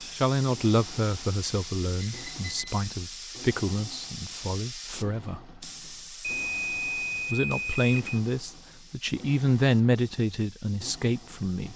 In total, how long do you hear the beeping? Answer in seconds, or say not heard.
3 s.